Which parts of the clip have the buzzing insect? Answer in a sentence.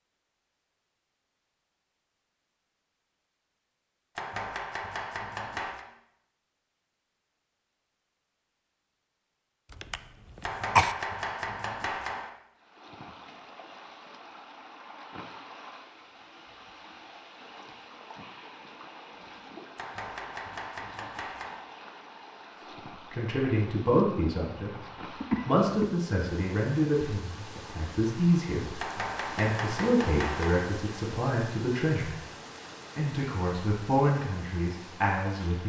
The buzzing insect can't be heard in this clip.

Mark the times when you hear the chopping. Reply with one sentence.
You can hear the chopping from 4.2 to 5.8 s, from 10.4 to 12.3 s, from 19.8 to 21.6 s and from 28.8 to 30.6 s.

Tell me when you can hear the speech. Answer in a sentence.
The speech can be heard from 23.1 to 24.8 s, from 25.4 to 32.1 s and from 33.0 to 35.6 s.